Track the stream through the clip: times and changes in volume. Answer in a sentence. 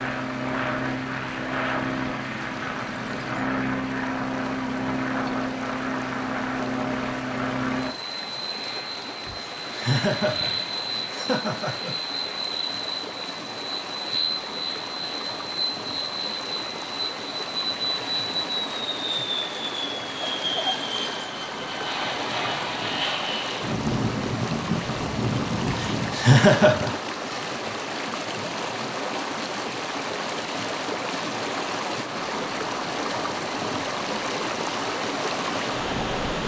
You can hear the stream from 0.0 to 36.4 s, getting louder.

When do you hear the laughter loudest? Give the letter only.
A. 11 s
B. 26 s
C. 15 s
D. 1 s
B.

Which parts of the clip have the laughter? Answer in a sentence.
The laughter can be heard from 9.2 to 11.9 s and from 25.6 to 27.4 s.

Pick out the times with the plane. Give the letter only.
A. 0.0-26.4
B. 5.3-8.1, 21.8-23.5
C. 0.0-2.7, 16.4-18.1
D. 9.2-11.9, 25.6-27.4
A.